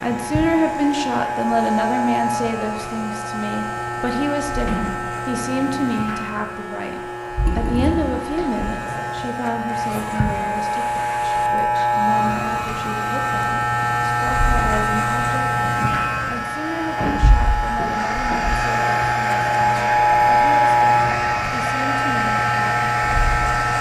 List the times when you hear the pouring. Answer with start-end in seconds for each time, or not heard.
7.5-8.2.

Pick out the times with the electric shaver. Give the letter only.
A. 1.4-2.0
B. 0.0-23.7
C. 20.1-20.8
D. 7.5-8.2
B.